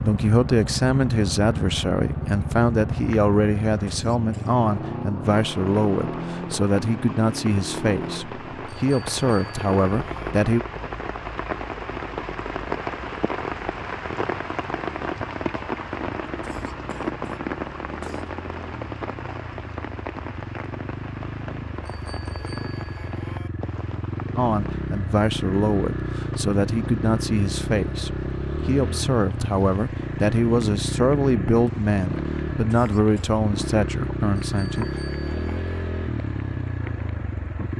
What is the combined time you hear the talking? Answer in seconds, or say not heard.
21 s.